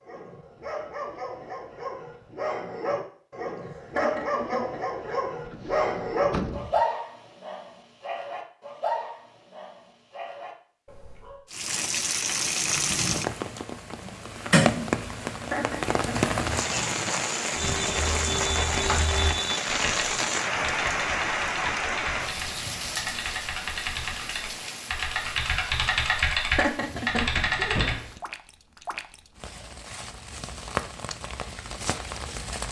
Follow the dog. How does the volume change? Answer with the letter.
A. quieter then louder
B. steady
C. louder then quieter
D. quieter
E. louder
C.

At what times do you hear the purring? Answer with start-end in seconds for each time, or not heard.
not heard.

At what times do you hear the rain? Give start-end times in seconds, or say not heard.
11.5-32.6.